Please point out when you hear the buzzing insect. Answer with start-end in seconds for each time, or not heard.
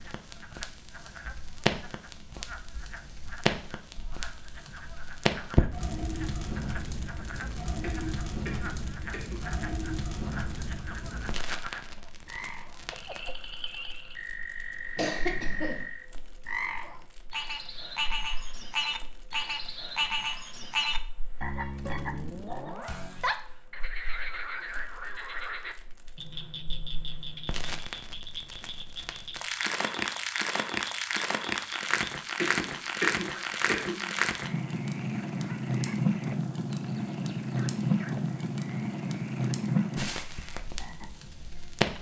not heard.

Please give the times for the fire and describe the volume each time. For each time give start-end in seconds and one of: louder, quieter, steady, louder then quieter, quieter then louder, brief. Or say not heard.
0.0-41.9 quieter then louder.